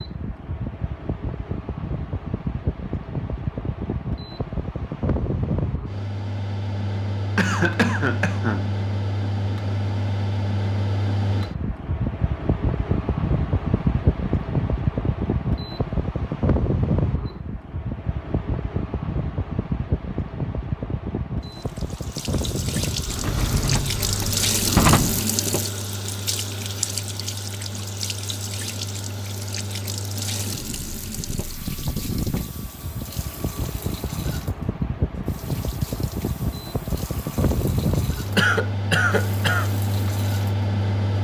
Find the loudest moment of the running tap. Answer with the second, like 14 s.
25 s.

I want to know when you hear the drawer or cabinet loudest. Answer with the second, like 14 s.
25 s.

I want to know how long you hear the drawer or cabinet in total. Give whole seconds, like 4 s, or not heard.
2 s.